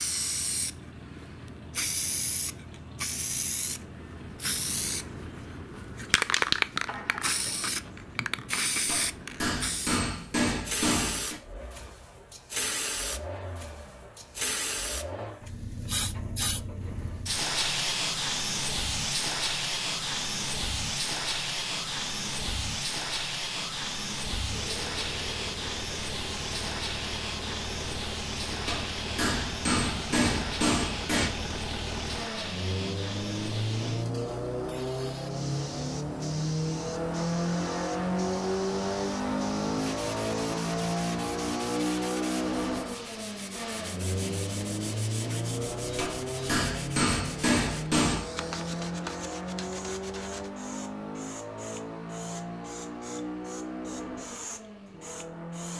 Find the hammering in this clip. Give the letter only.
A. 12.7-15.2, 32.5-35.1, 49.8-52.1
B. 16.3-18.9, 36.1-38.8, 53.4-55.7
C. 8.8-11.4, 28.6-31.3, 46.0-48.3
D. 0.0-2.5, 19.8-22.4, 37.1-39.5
C.